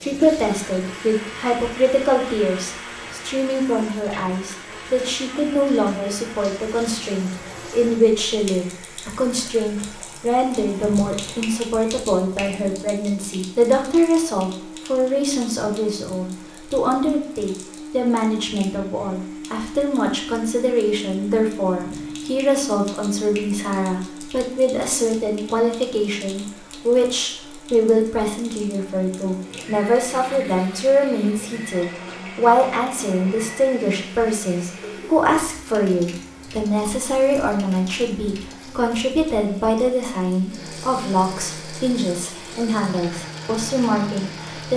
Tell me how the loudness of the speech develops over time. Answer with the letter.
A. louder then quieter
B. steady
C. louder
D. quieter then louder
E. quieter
B.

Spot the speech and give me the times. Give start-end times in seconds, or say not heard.
0.0-44.7.